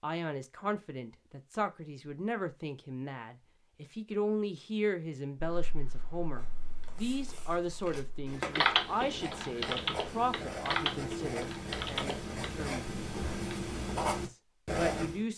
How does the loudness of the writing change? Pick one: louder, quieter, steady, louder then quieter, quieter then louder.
louder.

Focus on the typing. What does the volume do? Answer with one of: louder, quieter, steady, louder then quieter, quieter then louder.
louder then quieter.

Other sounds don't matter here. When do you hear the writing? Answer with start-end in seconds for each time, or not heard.
6.3-15.2.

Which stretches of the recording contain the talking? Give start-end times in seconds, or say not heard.
0.0-12.9, 14.2-15.3.